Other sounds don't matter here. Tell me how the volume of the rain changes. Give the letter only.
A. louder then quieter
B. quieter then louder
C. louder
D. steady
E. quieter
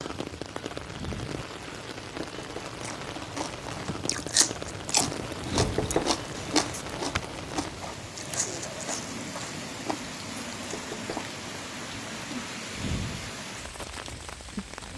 D.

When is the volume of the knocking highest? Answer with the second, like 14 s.
6 s.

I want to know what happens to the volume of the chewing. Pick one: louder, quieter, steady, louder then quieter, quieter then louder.
quieter.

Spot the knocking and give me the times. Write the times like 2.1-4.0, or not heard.
2.2-2.7, 5.5-6.2, 10.7-11.3.